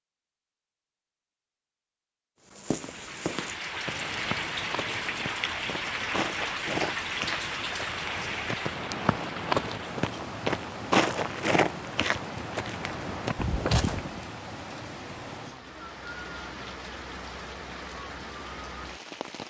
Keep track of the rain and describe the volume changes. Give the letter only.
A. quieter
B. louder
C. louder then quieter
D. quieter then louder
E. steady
A.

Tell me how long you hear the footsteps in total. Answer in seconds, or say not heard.
12 s.